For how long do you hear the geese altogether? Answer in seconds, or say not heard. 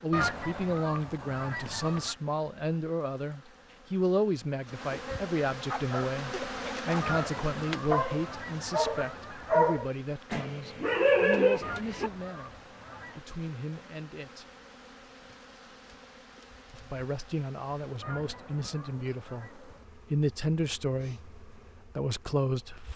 8 s.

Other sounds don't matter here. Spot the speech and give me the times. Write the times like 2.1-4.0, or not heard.
0.0-14.5, 16.7-22.9.